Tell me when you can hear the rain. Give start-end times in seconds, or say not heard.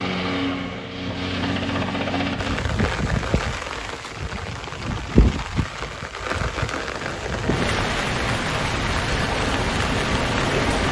2.4-10.8.